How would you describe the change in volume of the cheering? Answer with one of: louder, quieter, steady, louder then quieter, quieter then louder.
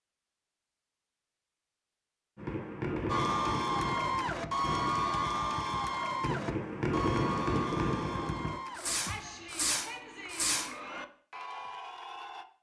quieter.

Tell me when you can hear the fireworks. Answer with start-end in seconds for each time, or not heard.
2.4-10.8.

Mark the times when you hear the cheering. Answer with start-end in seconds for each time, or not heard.
3.0-12.4.